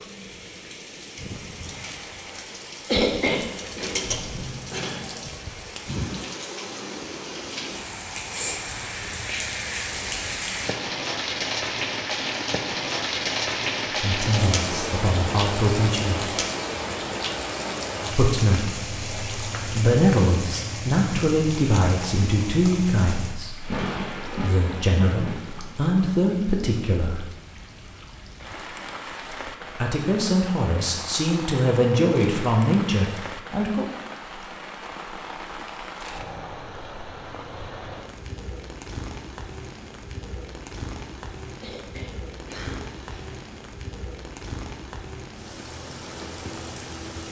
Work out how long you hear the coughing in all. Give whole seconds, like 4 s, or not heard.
3 s.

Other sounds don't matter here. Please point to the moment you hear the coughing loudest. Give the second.
3 s.